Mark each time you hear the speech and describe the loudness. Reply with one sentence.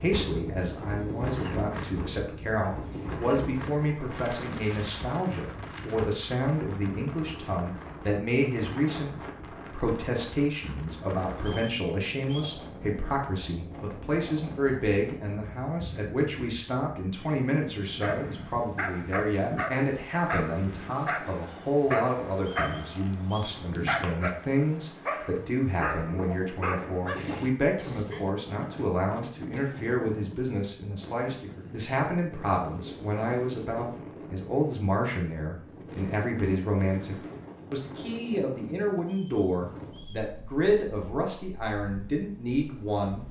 You can hear the speech from 0.0 to 43.2 s, at a steady volume.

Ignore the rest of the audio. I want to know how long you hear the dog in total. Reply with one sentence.
You can hear the dog for 10 seconds altogether.